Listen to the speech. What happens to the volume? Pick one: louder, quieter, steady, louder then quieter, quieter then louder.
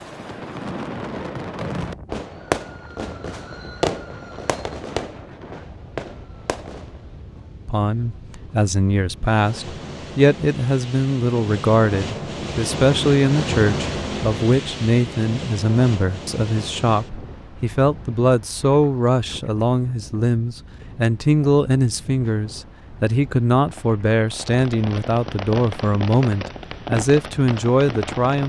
steady.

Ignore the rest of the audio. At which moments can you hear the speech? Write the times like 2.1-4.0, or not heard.
7.7-28.4.